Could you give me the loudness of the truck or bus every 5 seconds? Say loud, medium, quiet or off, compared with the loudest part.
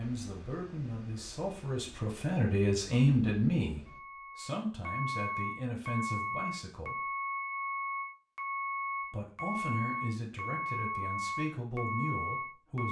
quiet, loud, loud.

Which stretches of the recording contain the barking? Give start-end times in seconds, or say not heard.
not heard.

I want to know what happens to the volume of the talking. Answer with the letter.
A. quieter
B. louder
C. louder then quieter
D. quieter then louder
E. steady
C.